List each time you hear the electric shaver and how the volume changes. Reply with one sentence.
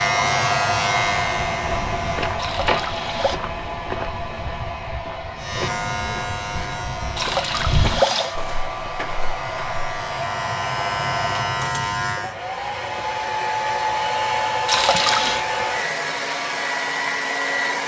You can hear the electric shaver briefly from 0.0 to 2.4 s; and from 5.3 to 12.3 s, getting quieter then louder.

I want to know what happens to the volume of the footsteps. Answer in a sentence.
The loudness of the footsteps goes down, then up.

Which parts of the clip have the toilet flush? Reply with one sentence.
The toilet flush can be heard from 2.4 to 3.4 s, from 7.2 to 8.3 s and from 14.7 to 15.4 s.